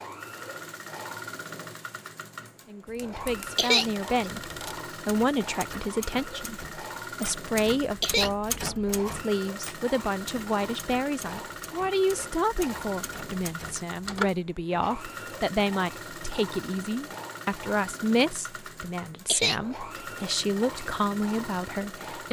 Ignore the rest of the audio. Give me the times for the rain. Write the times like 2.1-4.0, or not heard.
not heard.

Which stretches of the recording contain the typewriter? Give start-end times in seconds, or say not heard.
2.9-14.3.